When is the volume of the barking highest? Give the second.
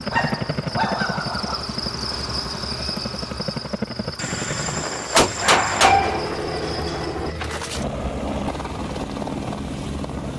6 s.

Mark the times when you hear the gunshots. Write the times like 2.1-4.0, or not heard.
5.1-6.4.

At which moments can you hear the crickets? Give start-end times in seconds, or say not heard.
0.0-7.4.